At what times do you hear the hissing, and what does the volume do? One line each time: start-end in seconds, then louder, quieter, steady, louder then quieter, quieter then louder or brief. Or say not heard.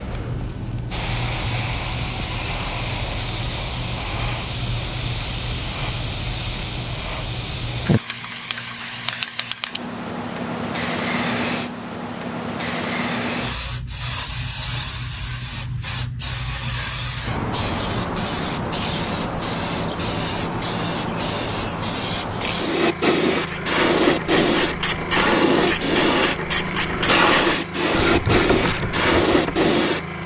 0.0-30.2 louder.